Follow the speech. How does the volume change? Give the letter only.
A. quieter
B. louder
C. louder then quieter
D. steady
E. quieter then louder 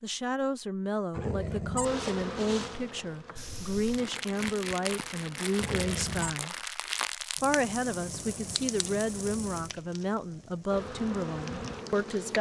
D.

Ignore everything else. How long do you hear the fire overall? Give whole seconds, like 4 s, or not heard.
9 s.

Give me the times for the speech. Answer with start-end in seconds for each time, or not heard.
0.0-6.5, 7.4-12.3.